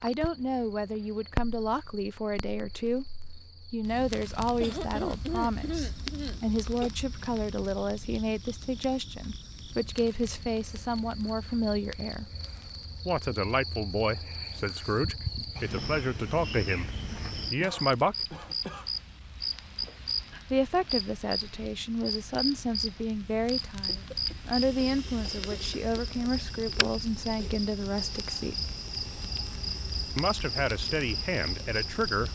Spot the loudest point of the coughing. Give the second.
5 s.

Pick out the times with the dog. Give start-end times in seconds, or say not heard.
not heard.